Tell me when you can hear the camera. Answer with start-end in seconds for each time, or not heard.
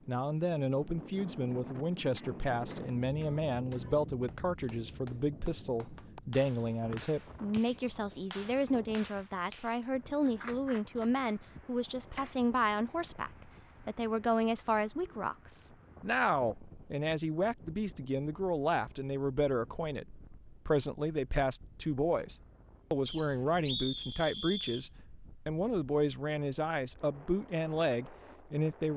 not heard.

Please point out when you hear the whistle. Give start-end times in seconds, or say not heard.
6.9-7.6, 23.1-24.9.